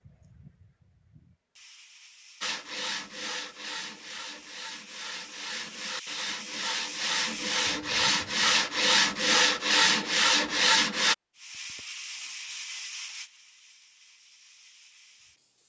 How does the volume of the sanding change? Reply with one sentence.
The volume of the sanding goes up.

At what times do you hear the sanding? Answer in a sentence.
The sanding can be heard from 2.4 to 11.2 s.